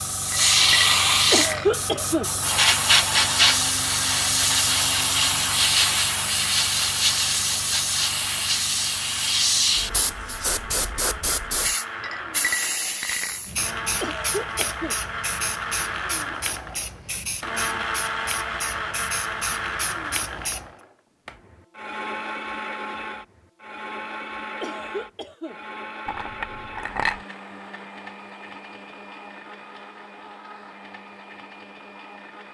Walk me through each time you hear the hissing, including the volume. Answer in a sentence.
You can hear the hissing from 0.0 to 20.7 s, getting quieter.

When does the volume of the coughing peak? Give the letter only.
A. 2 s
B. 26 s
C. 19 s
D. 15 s
A.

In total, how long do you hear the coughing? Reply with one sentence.
You can hear the coughing for 3 seconds altogether.